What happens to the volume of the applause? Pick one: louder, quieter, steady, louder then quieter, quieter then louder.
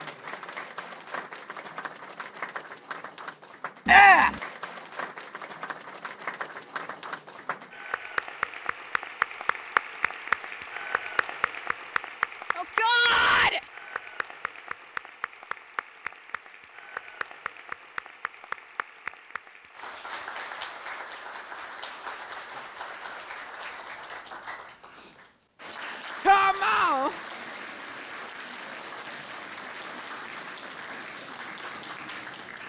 louder then quieter.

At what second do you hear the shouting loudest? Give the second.
4 s.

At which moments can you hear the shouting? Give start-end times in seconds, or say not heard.
3.9-4.4, 12.6-13.6, 26.2-27.1.